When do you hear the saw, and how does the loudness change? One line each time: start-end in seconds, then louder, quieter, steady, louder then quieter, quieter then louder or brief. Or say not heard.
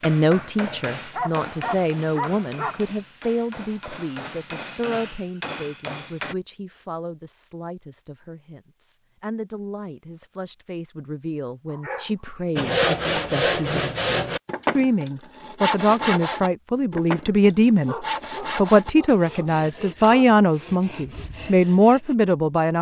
12.6-22.1 quieter.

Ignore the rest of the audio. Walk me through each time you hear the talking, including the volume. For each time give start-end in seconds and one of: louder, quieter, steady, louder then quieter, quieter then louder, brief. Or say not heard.
0.0-22.7 quieter then louder.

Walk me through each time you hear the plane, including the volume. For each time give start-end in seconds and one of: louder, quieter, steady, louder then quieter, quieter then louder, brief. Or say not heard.
not heard.